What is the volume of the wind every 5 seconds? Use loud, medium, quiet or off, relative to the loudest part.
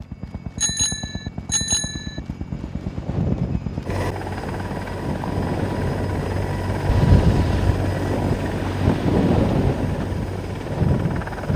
medium, loud, loud.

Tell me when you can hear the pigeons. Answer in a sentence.
The pigeons can't be heard in this clip.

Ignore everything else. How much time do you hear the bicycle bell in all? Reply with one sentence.
You can hear the bicycle bell for 3 seconds altogether.